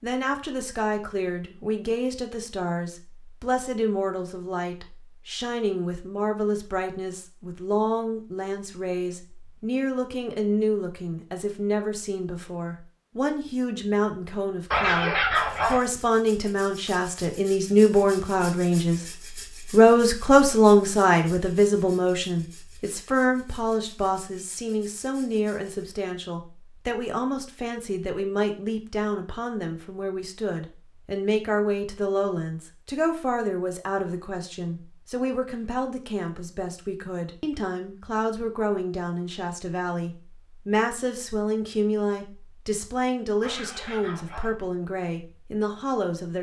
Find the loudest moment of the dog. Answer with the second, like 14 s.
15 s.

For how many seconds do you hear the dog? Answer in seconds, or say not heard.
2 s.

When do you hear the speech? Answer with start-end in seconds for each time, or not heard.
0.0-19.0, 19.7-46.3.